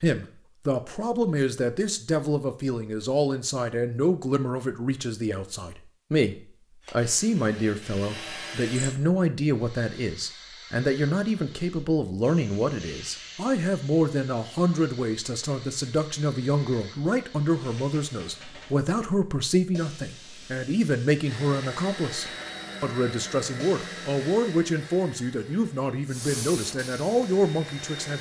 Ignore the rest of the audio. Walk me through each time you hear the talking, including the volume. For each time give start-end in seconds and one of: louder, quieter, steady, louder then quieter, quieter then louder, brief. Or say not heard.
0.0-28.1 steady.